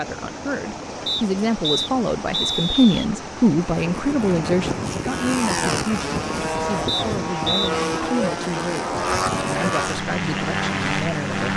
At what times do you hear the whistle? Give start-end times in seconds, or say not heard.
1.1-3.0, 6.8-7.7.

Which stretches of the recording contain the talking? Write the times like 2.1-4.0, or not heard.
0.0-11.5.